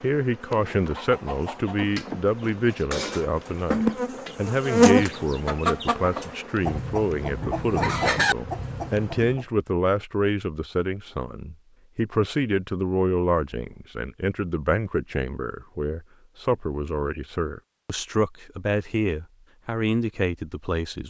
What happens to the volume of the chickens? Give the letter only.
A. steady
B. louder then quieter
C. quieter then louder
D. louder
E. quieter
D.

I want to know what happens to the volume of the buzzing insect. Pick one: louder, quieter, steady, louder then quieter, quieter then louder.
louder then quieter.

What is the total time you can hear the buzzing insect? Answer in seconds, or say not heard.
9 s.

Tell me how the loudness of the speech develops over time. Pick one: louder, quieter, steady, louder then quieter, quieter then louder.
steady.